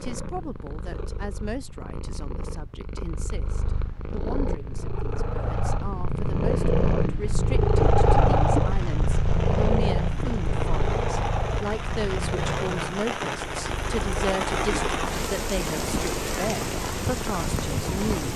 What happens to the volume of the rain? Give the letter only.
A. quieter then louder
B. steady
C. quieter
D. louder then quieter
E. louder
E.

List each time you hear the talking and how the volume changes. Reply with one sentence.
The talking can be heard from 0.0 to 18.3 s, getting louder.